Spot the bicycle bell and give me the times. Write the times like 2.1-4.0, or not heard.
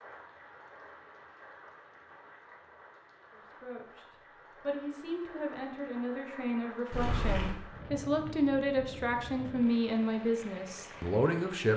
6.9-7.5.